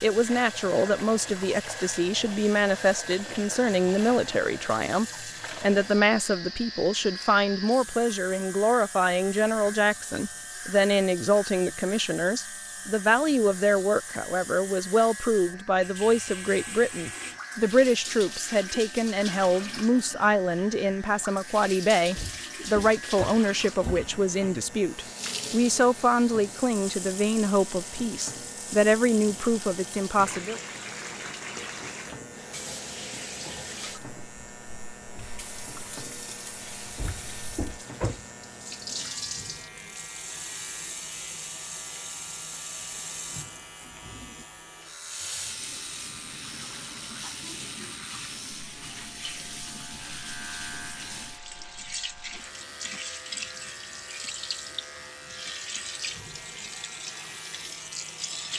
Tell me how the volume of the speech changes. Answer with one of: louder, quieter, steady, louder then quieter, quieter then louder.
steady.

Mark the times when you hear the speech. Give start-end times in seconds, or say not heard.
0.0-30.6.